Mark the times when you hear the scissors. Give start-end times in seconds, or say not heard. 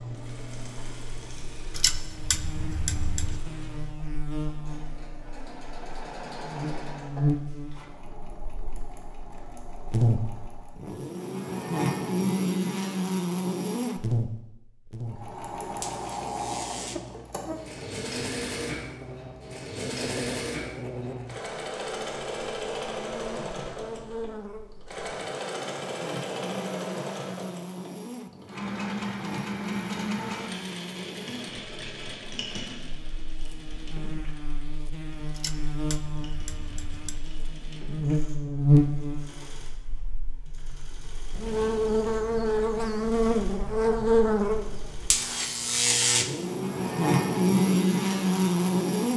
1.7-3.4, 35.3-37.2.